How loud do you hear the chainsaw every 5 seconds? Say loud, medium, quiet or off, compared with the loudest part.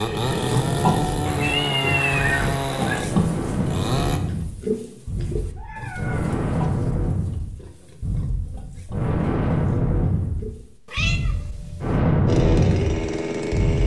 loud, off, loud.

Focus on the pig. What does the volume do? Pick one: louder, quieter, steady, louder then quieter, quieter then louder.
quieter.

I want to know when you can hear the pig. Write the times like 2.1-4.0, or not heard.
0.3-10.8.